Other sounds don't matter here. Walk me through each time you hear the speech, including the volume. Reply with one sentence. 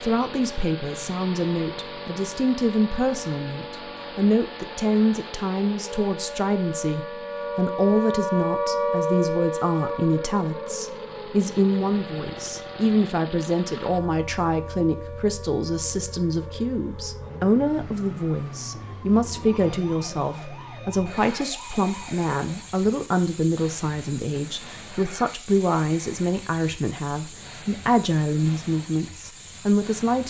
The speech can be heard from 0.0 to 30.2 s, at a steady volume.